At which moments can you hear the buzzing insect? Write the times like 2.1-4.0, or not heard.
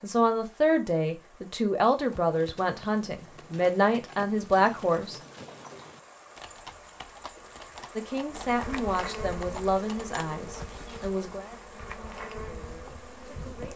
8.3-13.7.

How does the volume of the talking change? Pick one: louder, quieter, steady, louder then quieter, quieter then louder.
quieter.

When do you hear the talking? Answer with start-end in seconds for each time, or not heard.
0.0-5.2, 8.0-13.7.